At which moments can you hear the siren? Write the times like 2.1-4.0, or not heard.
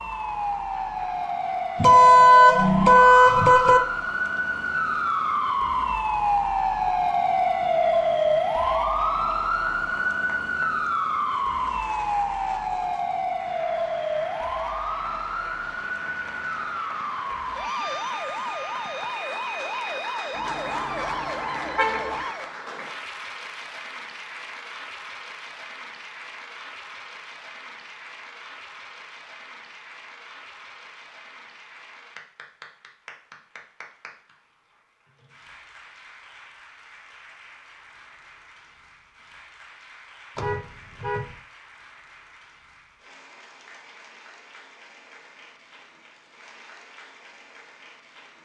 0.0-22.6.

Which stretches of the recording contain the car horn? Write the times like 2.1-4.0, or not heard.
1.8-3.8, 20.4-22.2, 40.4-41.4.